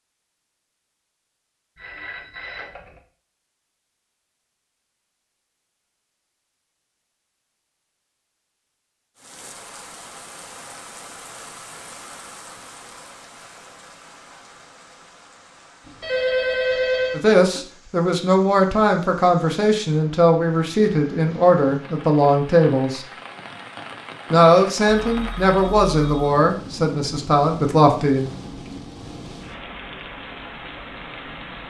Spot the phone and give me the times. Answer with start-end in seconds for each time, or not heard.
1.8-3.0, 15.8-17.6, 25.0-26.3.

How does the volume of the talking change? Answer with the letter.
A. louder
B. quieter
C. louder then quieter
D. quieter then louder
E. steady
E.